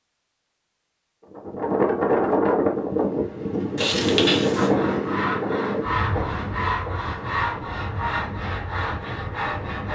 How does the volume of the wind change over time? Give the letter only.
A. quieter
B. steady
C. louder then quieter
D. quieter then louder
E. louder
A.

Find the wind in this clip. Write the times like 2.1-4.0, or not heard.
1.3-9.9.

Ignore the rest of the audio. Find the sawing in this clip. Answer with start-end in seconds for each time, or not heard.
4.5-9.9.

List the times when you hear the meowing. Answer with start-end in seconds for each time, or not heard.
3.8-4.7.